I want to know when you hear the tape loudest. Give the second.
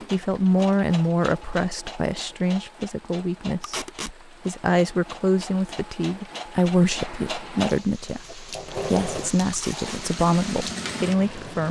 4 s.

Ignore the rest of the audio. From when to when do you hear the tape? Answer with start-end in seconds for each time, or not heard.
3.6-4.2, 9.5-10.1.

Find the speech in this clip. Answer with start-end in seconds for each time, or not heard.
0.1-3.9, 4.5-11.6.